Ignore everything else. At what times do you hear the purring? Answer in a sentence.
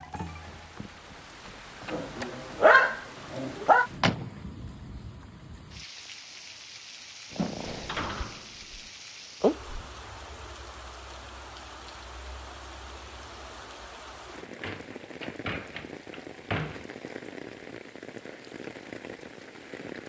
The purring can be heard from 7.3 to 8.3 s and from 9.4 to 9.8 s.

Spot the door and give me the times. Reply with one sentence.
You can hear the door from 3.6 to 4.3 s, from 7.7 to 8.9 s and from 14.2 to 16.9 s.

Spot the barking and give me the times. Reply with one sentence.
The barking can be heard from 1.9 to 3.9 s.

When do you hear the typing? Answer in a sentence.
You can't hear the typing here.